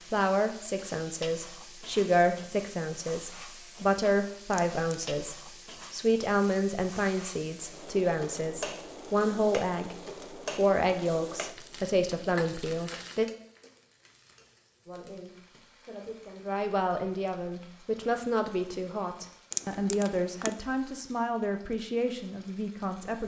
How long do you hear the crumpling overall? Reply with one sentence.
The crumpling can be heard for 2 seconds in total.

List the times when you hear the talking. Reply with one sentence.
You can hear the talking from 0.1 to 9.9 s, from 10.6 to 13.2 s and from 14.8 to 23.2 s.